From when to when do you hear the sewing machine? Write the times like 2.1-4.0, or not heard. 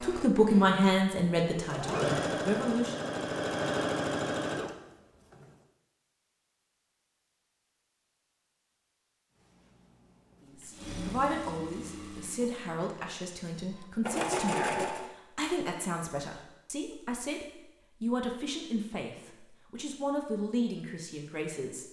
0.0-5.5, 9.4-15.1.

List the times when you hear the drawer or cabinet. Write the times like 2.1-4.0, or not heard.
not heard.